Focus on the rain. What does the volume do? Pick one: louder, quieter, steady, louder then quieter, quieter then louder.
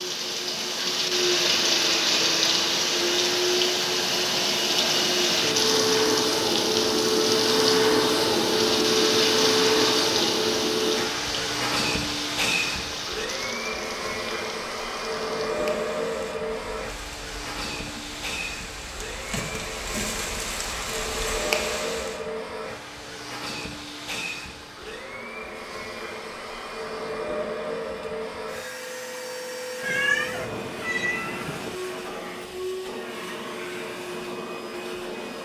quieter then louder.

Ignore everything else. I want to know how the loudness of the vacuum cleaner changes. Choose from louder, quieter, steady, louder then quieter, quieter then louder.
quieter.